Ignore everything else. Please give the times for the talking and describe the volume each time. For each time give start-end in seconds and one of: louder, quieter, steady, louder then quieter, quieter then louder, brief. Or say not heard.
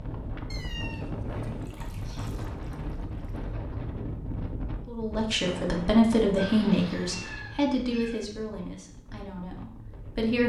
4.8-10.4 quieter.